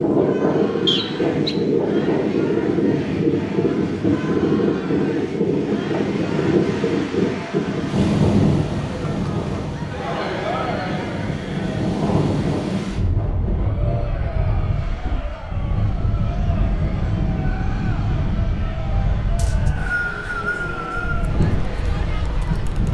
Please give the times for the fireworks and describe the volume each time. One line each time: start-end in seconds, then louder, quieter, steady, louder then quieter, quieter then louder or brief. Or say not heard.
not heard.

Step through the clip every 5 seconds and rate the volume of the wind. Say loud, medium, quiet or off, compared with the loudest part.
loud, loud, medium, medium, medium.